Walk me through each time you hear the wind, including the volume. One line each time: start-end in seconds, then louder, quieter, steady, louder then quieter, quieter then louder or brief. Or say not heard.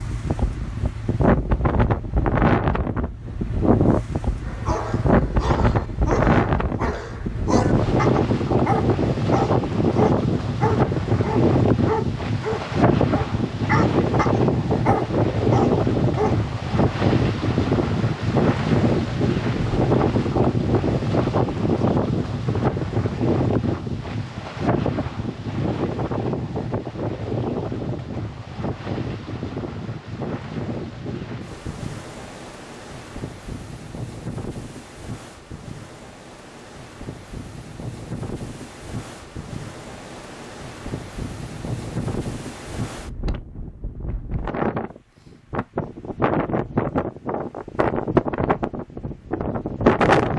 0.0-50.3 quieter then louder.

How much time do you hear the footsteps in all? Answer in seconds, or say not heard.
not heard.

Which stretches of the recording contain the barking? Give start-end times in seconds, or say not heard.
4.5-16.4.